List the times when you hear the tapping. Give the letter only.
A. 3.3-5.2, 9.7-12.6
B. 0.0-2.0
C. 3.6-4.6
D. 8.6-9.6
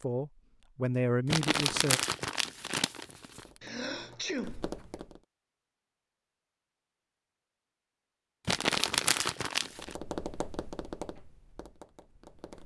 A.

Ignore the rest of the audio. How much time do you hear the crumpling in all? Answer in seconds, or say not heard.
4 s.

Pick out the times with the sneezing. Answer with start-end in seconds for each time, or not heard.
3.6-4.6.